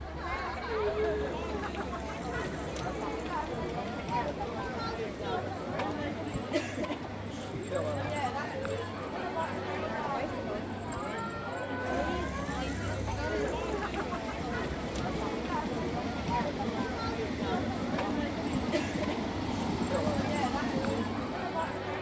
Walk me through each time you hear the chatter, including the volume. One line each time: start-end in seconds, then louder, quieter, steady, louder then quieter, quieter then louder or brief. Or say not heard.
0.0-21.9 steady.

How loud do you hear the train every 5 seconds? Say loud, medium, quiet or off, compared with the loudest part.
medium, medium, medium, loud, loud.